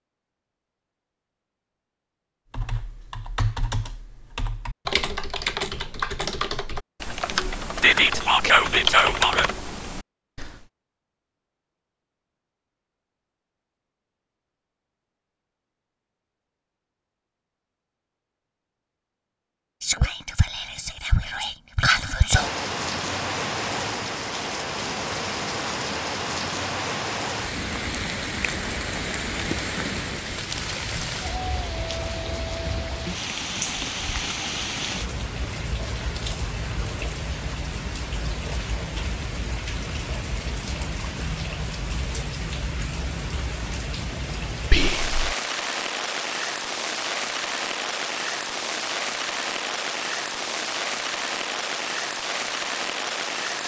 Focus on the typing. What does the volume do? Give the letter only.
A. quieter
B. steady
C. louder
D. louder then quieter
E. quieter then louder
C.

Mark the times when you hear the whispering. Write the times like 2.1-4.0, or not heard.
7.8-9.5, 19.8-22.5, 44.7-45.4.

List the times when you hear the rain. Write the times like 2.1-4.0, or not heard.
22.3-53.6.